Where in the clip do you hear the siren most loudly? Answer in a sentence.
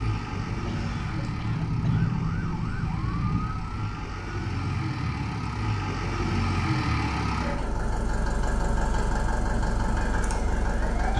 The volume of the siren peaks at 2 seconds.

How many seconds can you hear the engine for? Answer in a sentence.
You can hear the engine for 11 seconds altogether.